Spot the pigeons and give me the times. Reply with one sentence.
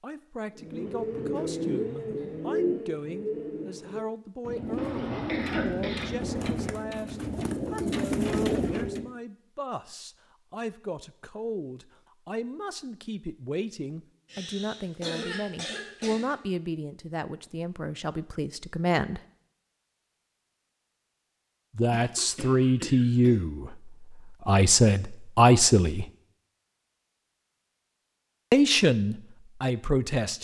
You can hear the pigeons from 0.6 to 9.1 s.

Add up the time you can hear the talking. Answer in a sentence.
The talking can be heard for 25 seconds in total.